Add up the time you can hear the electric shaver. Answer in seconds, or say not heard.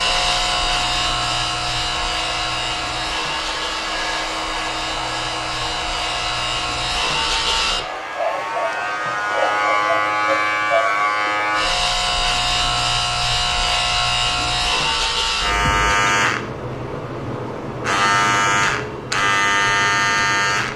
21 s.